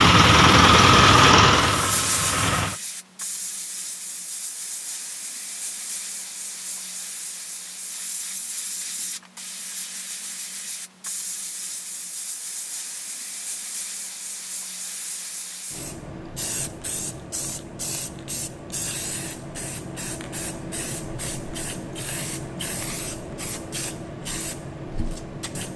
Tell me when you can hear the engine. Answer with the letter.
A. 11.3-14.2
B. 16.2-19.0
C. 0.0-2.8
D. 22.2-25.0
C.